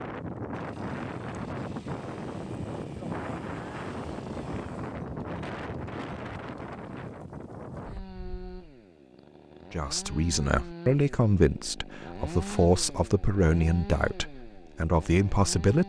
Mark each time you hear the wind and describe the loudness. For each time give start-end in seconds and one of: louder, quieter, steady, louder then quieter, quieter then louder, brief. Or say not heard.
0.0-8.6 quieter.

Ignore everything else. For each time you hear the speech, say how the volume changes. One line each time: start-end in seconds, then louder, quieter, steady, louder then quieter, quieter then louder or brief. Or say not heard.
9.7-15.8 steady.